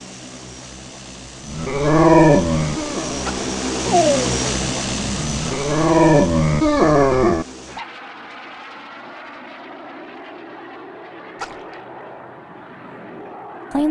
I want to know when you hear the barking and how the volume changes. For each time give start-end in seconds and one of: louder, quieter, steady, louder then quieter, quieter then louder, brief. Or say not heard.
1.6-7.5 quieter then louder.